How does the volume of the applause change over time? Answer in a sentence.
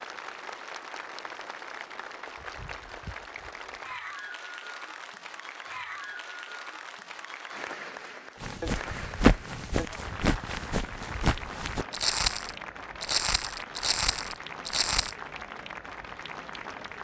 The volume of the applause stays about the same.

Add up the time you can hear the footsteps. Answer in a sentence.
The footsteps can be heard for 7 seconds in total.